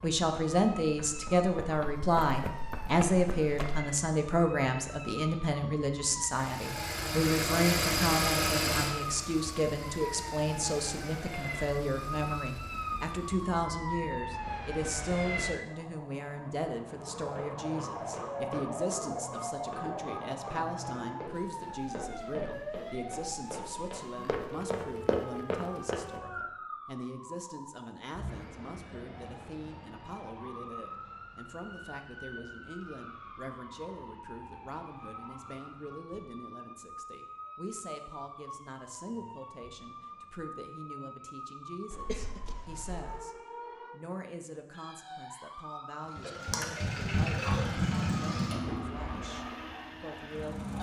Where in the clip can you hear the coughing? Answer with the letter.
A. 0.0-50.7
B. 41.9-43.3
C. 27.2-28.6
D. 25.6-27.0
B.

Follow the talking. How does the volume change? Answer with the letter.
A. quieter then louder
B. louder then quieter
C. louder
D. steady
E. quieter
E.